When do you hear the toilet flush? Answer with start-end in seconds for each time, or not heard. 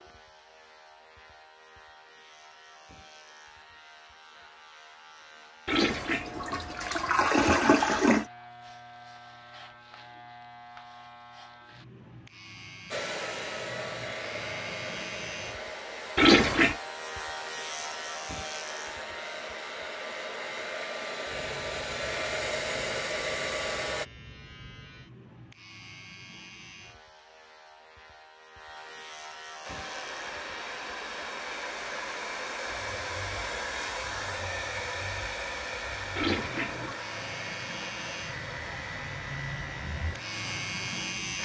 5.7-8.2, 16.1-16.8, 36.1-37.0.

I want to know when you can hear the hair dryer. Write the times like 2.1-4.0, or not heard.
12.9-24.1, 29.6-41.3.